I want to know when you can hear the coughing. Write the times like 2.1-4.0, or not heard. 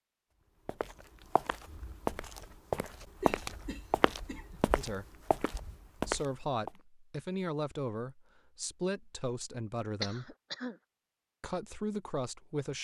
3.2-4.6, 10.0-10.8.